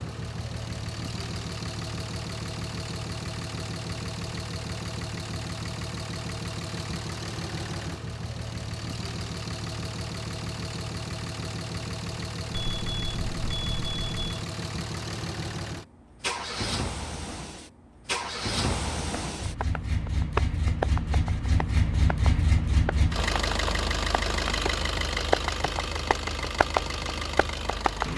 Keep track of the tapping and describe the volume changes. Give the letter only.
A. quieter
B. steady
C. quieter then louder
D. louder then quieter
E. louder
C.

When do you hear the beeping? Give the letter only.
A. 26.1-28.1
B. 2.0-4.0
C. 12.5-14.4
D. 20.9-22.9
C.